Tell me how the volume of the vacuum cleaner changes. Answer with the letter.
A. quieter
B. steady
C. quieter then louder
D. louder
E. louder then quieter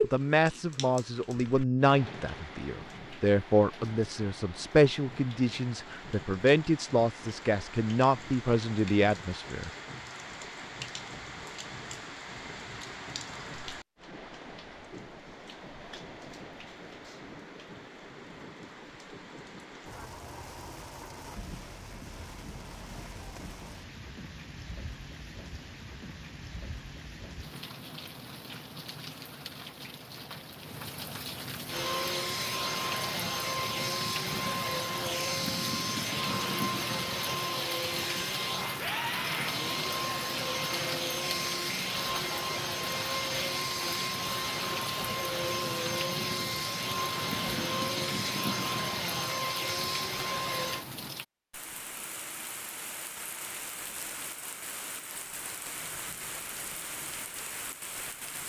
B.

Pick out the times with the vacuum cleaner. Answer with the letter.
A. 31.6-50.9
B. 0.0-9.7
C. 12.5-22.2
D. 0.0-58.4
A.